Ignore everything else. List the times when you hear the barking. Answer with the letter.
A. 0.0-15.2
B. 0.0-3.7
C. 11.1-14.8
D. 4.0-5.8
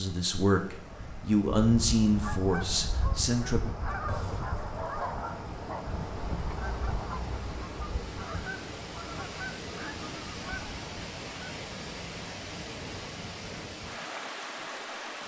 D.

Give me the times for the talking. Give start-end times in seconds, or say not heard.
0.0-3.7.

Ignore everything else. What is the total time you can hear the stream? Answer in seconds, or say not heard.
15 s.